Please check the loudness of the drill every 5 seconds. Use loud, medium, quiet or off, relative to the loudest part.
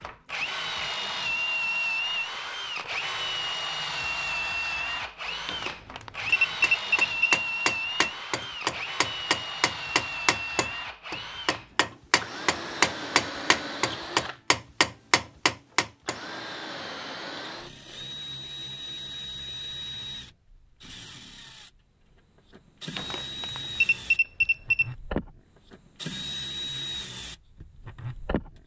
loud, loud, medium, medium, medium, medium.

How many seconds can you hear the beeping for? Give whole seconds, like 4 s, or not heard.
4 s.